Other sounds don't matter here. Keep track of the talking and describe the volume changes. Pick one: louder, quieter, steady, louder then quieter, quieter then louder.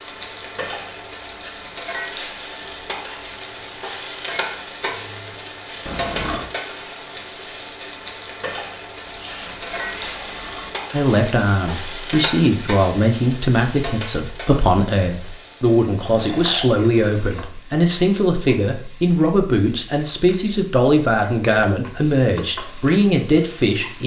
steady.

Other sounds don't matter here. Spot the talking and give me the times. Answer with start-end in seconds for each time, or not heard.
10.9-24.0.